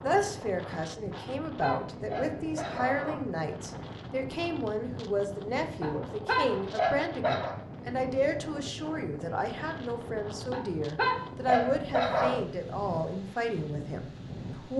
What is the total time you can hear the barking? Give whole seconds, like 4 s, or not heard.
6 s.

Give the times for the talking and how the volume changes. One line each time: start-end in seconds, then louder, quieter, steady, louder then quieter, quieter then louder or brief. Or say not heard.
0.0-14.7 steady.